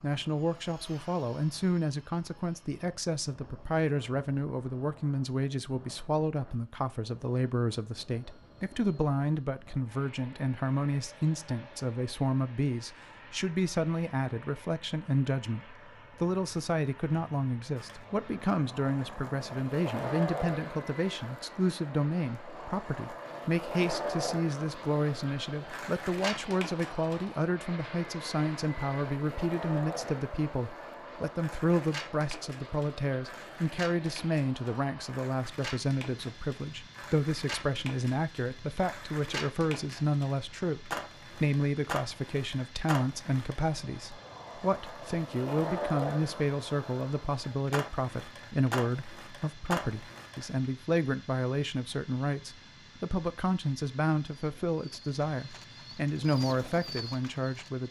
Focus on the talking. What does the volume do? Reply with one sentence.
The volume of the talking stays about the same.